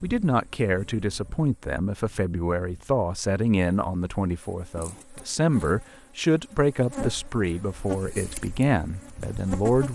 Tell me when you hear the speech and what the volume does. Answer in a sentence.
The speech can be heard from 0.0 to 9.9 s, at a steady volume.